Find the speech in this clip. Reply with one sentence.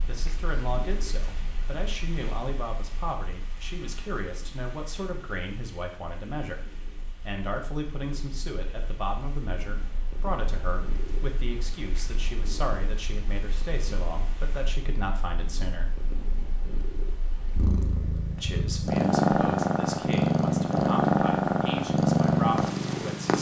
The speech can be heard from 0.1 to 15.9 s and from 18.4 to 23.3 s.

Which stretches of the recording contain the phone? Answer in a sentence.
You can't hear the phone here.